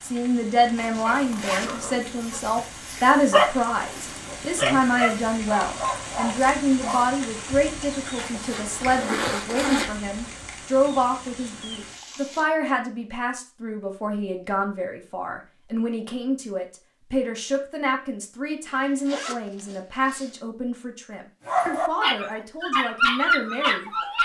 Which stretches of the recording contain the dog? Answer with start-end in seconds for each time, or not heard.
1.1-7.2, 21.4-24.2.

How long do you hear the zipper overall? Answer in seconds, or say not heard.
5 s.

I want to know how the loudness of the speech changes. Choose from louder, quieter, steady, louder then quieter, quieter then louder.
quieter.